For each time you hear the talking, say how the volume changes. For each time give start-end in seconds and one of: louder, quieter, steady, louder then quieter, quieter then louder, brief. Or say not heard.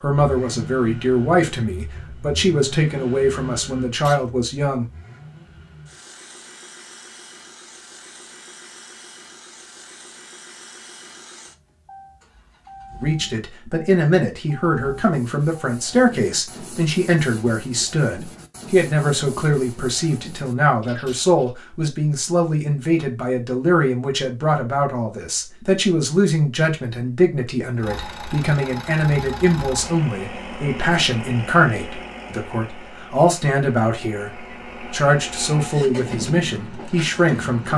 0.0-4.8 steady
13.0-37.7 steady.